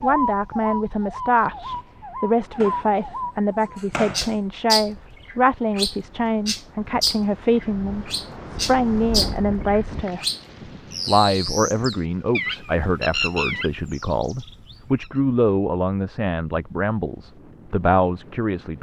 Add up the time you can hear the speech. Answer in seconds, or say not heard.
18 s.